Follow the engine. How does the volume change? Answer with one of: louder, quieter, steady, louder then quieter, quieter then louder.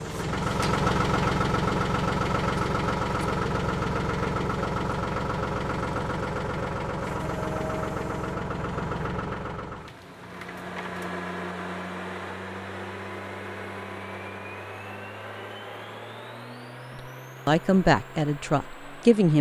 quieter.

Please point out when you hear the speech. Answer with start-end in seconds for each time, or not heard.
16.9-19.3.